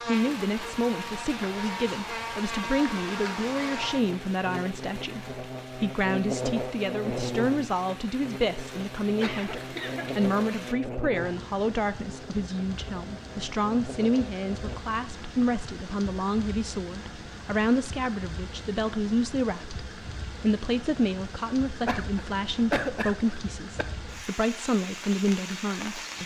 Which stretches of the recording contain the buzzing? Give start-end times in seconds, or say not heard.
0.0-14.8.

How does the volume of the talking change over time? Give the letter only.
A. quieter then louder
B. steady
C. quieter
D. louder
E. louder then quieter
B.